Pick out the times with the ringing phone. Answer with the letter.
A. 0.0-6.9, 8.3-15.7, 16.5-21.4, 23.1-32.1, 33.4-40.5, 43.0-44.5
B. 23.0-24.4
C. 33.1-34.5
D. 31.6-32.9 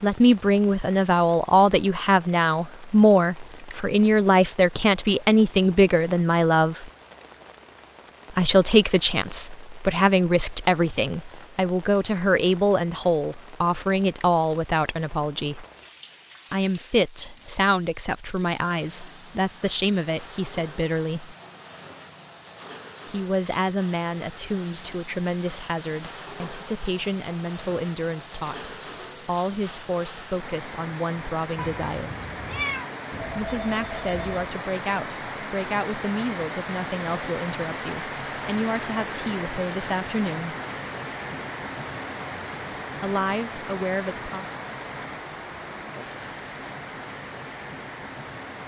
C.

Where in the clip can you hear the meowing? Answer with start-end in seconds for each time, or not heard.
31.6-32.9.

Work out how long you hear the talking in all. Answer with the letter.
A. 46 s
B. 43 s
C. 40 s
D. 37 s
D.